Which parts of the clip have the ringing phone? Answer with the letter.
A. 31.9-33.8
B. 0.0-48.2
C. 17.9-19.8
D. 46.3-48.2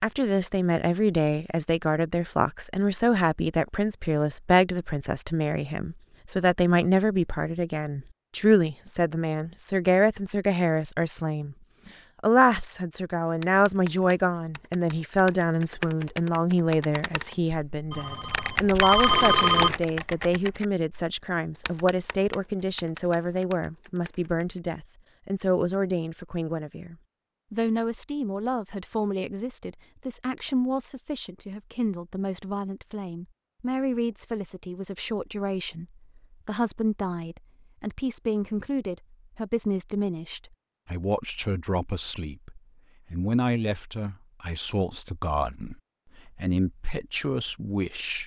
C.